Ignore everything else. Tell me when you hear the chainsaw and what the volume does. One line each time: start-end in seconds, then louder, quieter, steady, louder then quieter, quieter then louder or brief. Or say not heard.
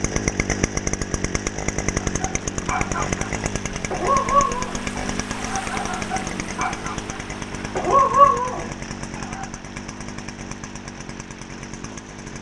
0.0-12.3 quieter.